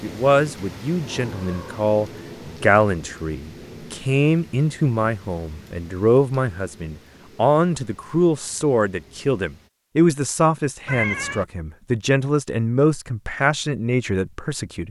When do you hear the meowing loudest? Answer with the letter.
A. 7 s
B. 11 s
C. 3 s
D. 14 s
B.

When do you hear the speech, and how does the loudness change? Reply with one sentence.
The speech can be heard from 0.0 to 14.8 s, at a steady volume.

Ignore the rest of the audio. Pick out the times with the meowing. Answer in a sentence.
The meowing can be heard from 0.6 to 2.6 s and from 10.8 to 11.4 s.